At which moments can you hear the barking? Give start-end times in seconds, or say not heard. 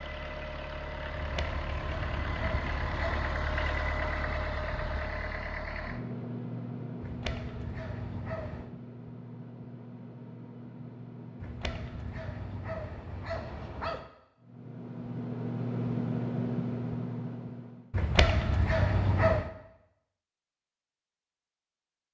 1.1-3.4, 7.0-8.7, 11.4-14.1, 17.9-19.5.